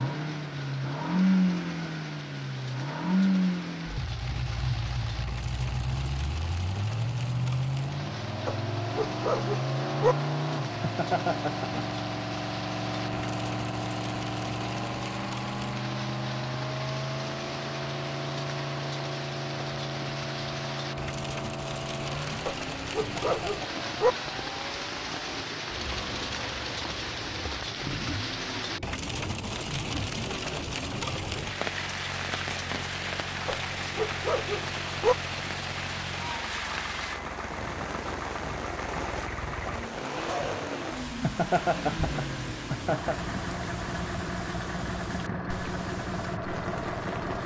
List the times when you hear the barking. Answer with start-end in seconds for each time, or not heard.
8.4-10.2, 22.4-24.1, 33.5-35.1.